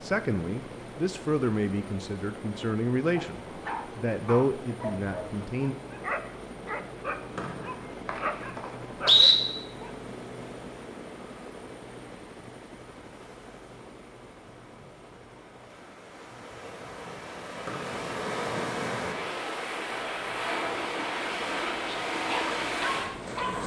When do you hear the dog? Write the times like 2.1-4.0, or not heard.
3.1-9.9, 21.9-23.6.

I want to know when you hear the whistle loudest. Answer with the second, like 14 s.
9 s.